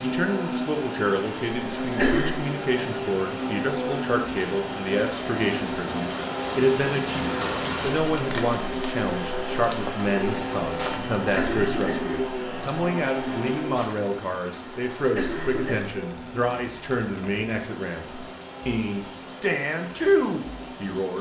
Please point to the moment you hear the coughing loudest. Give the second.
2 s.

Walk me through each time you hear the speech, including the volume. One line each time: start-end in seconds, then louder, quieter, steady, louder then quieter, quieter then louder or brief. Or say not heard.
0.0-21.1 steady.